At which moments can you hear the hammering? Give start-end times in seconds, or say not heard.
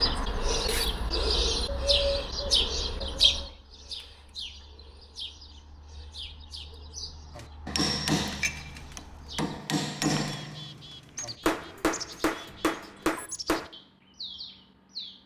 7.3-13.7.